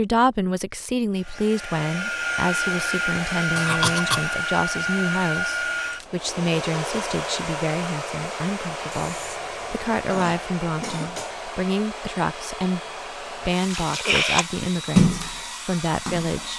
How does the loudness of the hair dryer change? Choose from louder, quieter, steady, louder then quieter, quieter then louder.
quieter.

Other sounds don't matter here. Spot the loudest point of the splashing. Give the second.
15 s.